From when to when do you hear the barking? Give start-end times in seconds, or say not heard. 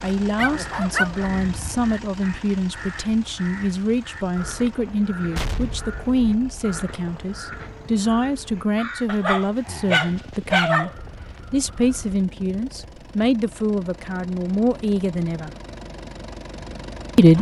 0.3-1.9, 9.1-10.9.